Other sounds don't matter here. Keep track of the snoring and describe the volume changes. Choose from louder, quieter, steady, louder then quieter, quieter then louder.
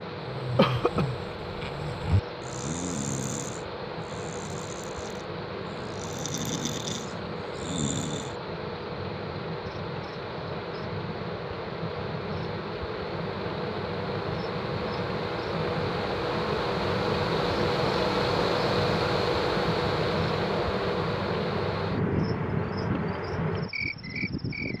quieter then louder.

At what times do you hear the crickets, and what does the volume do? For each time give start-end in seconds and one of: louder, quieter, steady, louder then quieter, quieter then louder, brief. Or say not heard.
0.0-24.7 louder.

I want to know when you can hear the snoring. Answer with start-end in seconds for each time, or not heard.
0.1-8.3.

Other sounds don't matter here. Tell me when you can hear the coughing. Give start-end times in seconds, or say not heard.
0.3-1.1.